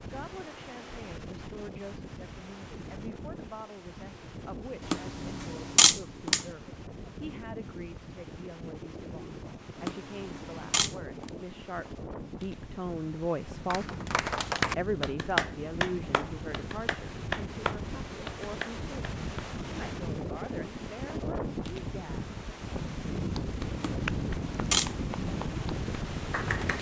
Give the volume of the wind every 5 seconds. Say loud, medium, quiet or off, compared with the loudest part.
medium, medium, medium, medium, loud, loud.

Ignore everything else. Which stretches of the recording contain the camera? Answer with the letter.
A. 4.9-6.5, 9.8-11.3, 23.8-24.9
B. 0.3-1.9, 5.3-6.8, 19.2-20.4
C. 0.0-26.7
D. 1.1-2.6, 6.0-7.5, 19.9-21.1
A.